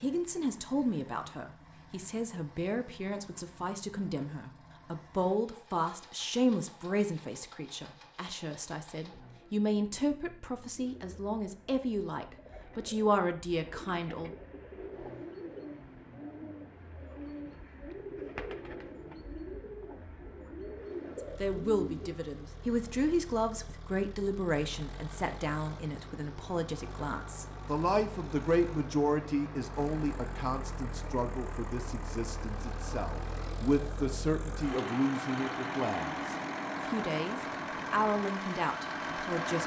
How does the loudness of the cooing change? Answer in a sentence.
The loudness of the cooing goes up.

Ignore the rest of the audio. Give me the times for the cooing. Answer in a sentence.
You can hear the cooing from 10.8 to 22.1 s.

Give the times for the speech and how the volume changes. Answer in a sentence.
The speech can be heard from 0.0 to 14.3 s, at a steady volume; and from 21.1 to 39.6 s, at a steady volume.